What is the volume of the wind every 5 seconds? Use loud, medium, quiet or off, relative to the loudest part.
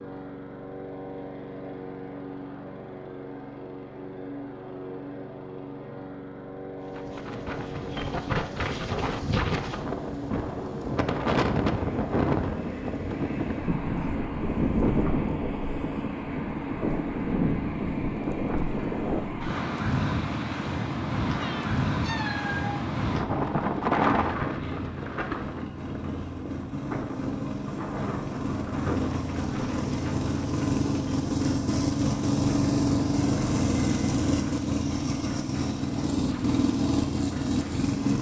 off, loud, loud, loud, loud, medium, quiet, quiet.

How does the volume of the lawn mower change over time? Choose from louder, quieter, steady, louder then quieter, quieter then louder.
louder.